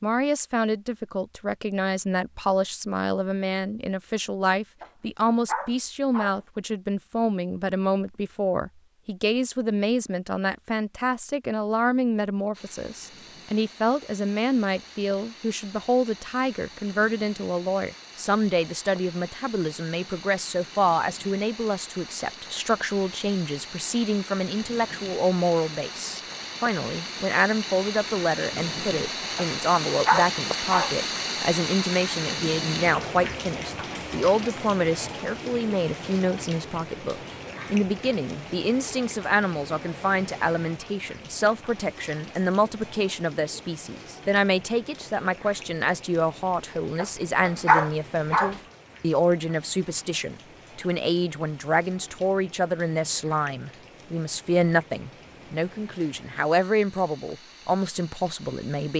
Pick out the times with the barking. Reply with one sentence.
You can hear the barking from 4.8 to 6.4 s, from 29.4 to 30.9 s and from 47.0 to 48.5 s.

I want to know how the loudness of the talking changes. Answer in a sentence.
The loudness of the talking stays about the same.